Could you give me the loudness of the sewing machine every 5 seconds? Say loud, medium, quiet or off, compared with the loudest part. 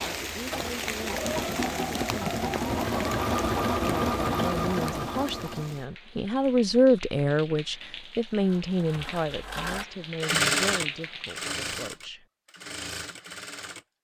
loud, medium, loud.